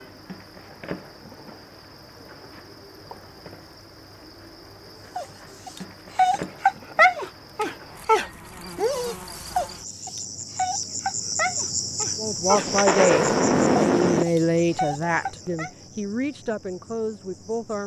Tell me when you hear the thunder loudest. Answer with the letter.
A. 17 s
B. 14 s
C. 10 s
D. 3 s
B.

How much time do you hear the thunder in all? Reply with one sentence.
You can hear the thunder for 2 seconds altogether.